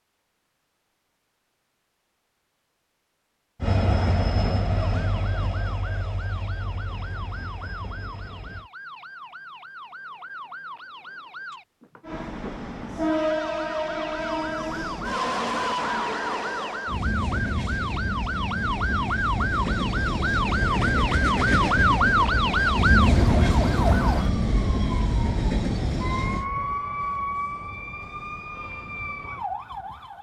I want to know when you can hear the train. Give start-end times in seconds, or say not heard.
3.6-8.7, 12.0-26.4.